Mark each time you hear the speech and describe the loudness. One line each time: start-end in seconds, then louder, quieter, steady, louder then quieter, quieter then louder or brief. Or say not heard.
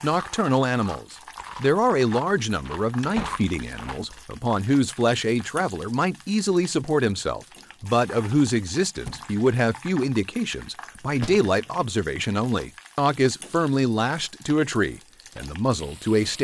0.0-16.4 steady.